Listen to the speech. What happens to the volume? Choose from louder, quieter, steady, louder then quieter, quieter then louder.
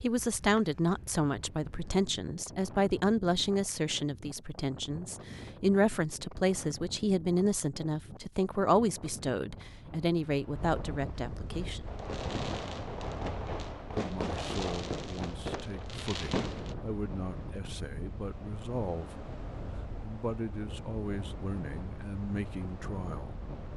quieter.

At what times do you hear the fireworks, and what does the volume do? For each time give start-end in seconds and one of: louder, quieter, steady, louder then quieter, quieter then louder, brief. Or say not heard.
11.5-16.8 steady.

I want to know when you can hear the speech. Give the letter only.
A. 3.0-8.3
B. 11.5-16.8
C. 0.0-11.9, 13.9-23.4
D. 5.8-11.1
C.